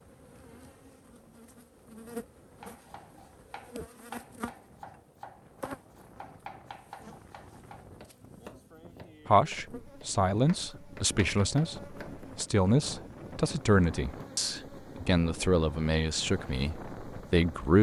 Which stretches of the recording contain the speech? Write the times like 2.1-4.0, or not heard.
9.2-17.7.